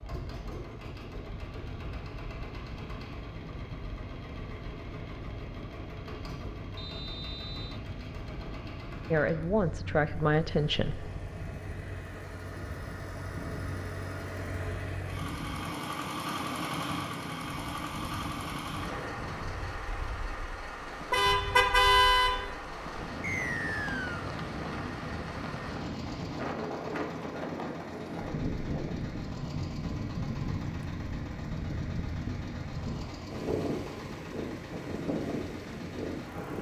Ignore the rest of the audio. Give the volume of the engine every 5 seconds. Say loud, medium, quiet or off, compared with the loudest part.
medium, medium, medium, loud, medium, medium, medium, medium.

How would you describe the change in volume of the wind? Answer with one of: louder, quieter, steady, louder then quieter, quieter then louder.
louder.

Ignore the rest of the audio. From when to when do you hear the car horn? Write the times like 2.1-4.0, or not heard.
21.1-22.4.